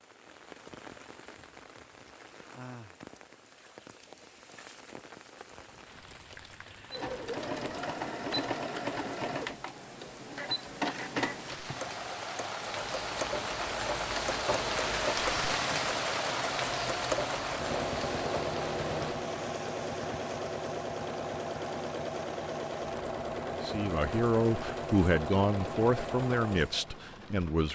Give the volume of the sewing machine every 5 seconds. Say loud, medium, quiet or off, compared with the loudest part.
off, loud, loud, loud, loud, loud.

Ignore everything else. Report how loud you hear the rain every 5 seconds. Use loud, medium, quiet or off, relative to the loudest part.
quiet, quiet, loud, loud, quiet, quiet.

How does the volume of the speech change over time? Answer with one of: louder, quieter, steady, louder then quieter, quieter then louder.
quieter.